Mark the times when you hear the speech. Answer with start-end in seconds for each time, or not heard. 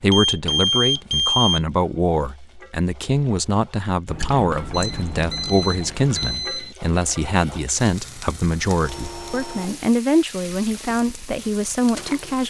0.0-12.4.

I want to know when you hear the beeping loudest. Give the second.
1 s.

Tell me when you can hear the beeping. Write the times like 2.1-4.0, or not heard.
0.1-1.6, 4.7-6.8, 8.8-9.9.